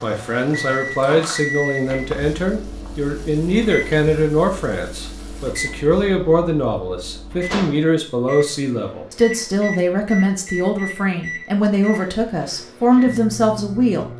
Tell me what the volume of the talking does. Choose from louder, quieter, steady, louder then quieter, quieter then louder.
steady.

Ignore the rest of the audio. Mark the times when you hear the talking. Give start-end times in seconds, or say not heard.
0.0-14.1.